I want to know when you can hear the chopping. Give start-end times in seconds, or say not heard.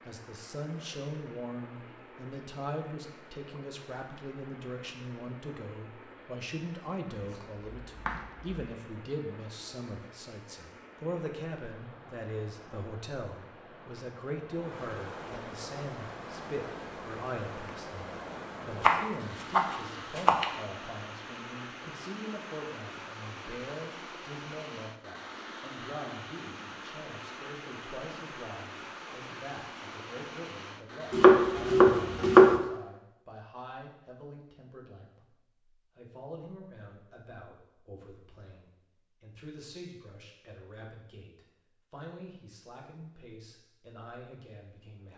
7.1-8.4, 18.8-20.4, 31.1-32.6.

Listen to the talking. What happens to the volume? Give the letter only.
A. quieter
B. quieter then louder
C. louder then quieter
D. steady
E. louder
A.